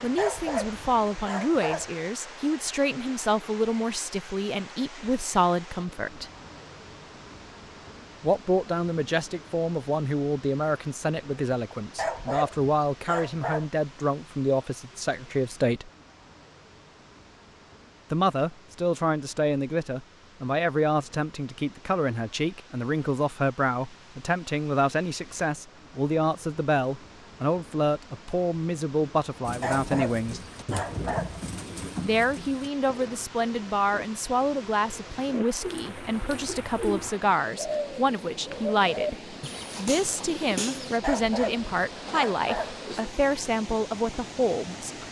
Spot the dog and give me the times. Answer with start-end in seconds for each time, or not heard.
0.1-1.9, 11.9-13.7, 29.6-31.4, 41.0-42.8.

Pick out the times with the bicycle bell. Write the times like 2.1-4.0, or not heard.
not heard.